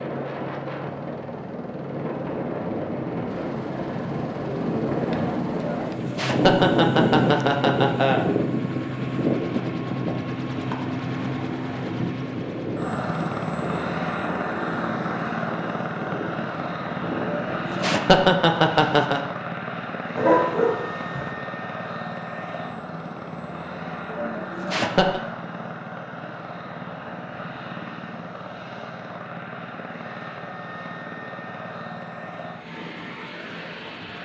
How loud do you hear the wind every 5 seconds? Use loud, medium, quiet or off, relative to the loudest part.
medium, loud, medium, medium, off, off, off.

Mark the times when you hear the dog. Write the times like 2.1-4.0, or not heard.
20.1-21.3.